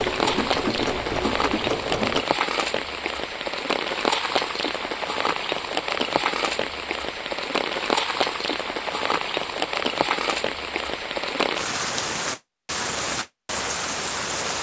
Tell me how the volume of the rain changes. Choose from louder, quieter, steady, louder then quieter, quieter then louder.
steady.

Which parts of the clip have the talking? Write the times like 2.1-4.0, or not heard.
not heard.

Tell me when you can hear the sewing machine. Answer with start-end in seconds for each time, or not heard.
0.0-2.2.